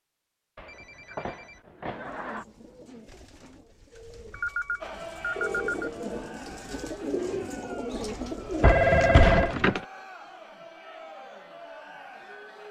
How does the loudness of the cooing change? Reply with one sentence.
The loudness of the cooing goes up.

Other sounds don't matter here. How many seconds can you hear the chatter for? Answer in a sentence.
The chatter can be heard for 8 seconds in total.